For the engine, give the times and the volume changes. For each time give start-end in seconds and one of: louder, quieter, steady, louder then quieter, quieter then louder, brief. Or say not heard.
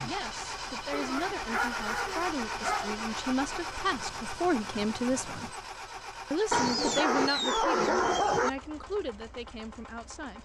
0.0-10.3 quieter.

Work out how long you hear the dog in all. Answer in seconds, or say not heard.
4 s.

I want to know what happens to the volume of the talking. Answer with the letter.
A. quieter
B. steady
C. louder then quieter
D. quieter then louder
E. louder
C.